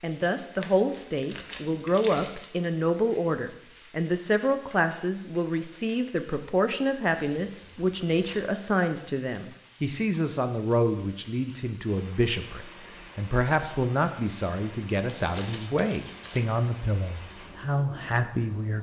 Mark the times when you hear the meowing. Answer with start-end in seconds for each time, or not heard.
not heard.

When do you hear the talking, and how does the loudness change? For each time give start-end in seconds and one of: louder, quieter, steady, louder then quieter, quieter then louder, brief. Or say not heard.
0.0-18.7 steady.